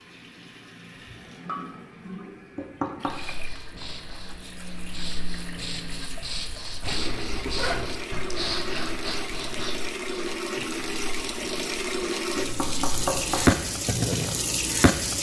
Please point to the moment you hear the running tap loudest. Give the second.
14 s.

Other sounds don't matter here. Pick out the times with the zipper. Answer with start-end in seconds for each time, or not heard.
6.8-7.9.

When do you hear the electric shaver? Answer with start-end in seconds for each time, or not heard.
not heard.